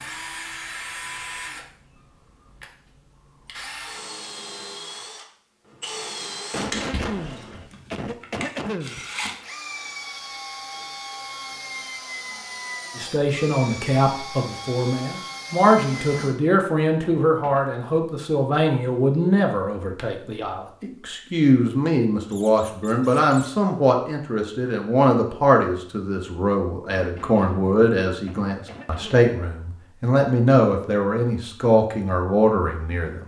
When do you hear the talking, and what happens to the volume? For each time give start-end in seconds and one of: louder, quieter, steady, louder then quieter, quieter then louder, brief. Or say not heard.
12.9-33.2 steady.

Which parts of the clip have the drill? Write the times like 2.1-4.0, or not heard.
0.0-16.4.